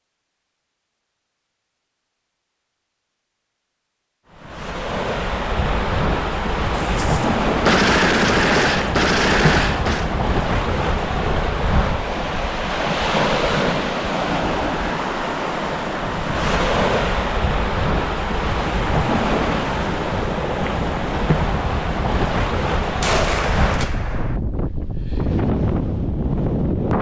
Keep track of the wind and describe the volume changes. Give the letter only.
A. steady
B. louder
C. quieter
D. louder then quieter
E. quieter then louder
A.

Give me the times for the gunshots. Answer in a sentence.
You can hear the gunshots from 6.8 to 10.1 s and from 23.0 to 24.4 s.